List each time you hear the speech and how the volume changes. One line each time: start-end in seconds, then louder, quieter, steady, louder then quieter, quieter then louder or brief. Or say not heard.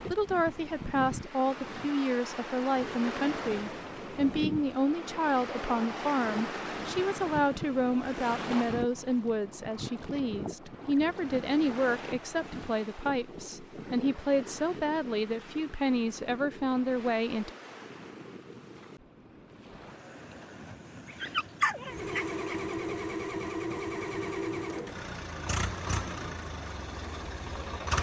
0.0-17.5 steady.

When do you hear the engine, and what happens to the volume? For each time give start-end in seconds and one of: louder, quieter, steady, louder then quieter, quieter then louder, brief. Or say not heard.
21.9-27.9 quieter.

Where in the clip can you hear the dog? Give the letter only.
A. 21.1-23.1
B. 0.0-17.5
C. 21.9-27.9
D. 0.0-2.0
A.